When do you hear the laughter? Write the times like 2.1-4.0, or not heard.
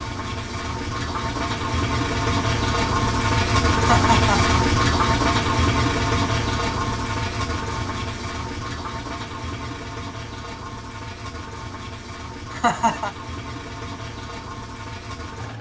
3.8-4.5, 12.5-13.2.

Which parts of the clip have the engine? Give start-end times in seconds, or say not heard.
0.0-15.5.